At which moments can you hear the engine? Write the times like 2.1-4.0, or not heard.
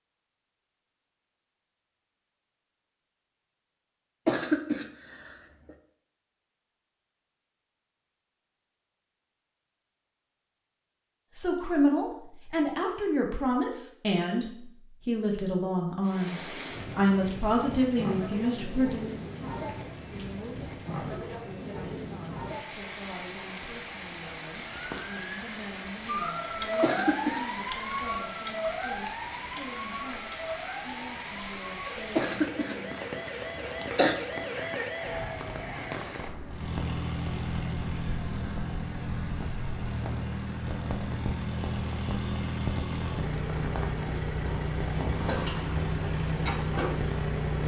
36.5-47.6.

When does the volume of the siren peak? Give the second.
27 s.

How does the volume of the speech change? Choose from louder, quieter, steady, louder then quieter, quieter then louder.
quieter.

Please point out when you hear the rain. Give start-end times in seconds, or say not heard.
16.0-47.6.